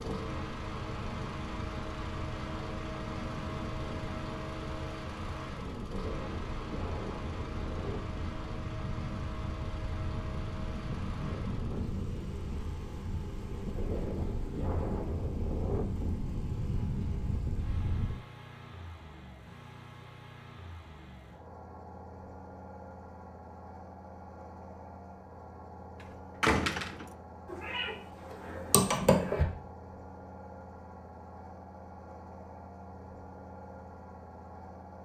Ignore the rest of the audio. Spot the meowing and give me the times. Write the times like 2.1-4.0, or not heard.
27.4-29.4.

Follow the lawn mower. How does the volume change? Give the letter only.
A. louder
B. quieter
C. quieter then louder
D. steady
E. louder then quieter
B.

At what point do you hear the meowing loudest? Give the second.
29 s.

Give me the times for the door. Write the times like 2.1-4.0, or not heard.
26.4-27.1.